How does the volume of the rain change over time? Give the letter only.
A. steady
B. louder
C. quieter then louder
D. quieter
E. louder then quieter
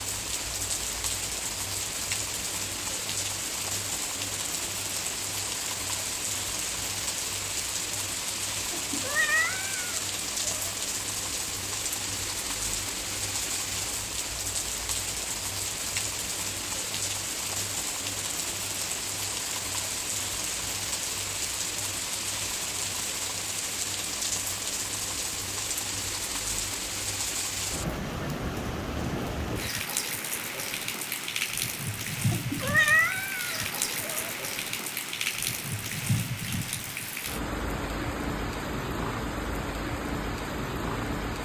A.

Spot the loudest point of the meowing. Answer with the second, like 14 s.
33 s.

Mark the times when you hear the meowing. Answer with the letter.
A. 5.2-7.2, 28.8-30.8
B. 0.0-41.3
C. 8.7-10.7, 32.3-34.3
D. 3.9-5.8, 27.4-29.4
C.